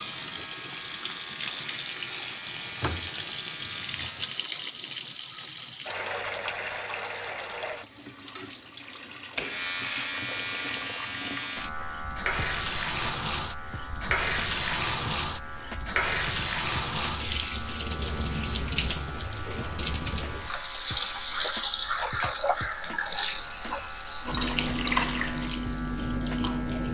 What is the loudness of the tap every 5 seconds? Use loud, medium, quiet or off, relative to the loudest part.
loud, medium, loud, loud, loud, loud.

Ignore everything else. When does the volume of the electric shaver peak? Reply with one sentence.
The volume of the electric shaver peaks at 10 seconds.